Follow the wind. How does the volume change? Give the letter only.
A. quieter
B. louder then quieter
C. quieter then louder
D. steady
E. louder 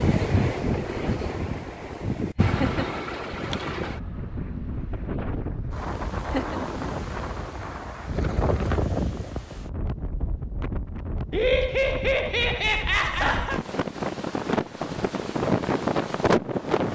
C.